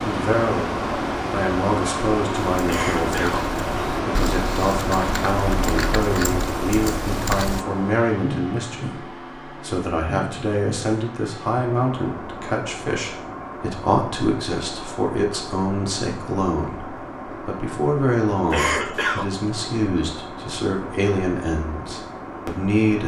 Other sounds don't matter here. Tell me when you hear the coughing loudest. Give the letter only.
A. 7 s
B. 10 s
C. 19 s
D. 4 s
C.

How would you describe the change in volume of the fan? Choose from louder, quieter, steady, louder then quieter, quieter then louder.
quieter.